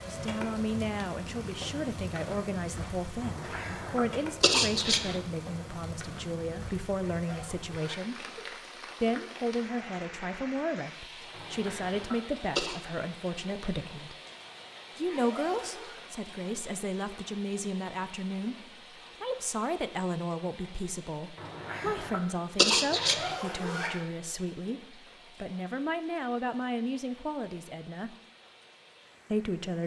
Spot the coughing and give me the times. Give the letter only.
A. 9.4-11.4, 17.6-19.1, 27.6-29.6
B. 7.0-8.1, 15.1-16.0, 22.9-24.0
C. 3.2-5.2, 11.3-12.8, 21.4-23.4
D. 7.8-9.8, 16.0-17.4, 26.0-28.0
C.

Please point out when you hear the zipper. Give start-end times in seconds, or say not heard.
7.0-8.1, 15.1-16.0, 22.9-24.0.